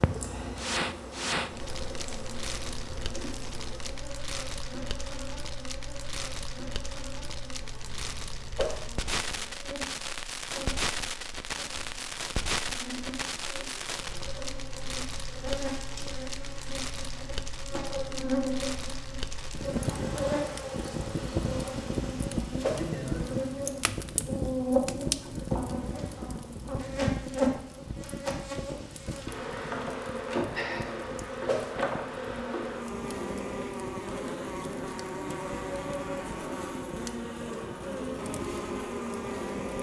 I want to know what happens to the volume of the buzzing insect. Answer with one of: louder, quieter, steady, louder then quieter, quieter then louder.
louder.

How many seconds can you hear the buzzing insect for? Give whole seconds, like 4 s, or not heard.
40 s.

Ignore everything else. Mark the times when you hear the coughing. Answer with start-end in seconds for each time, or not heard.
not heard.